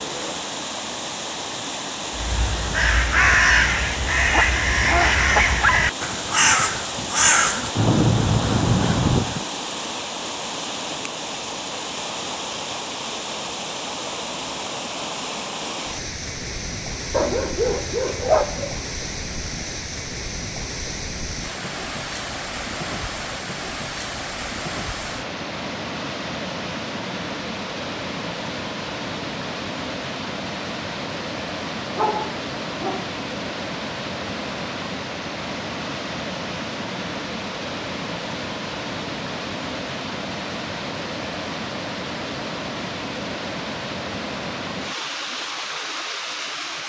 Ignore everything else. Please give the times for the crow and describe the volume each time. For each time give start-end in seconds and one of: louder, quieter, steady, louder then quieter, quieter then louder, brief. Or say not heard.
2.1-9.4 steady.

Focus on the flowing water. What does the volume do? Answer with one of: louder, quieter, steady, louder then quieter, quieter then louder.
steady.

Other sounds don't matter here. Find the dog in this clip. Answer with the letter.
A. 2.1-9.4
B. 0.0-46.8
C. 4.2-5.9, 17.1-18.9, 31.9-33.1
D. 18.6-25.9
C.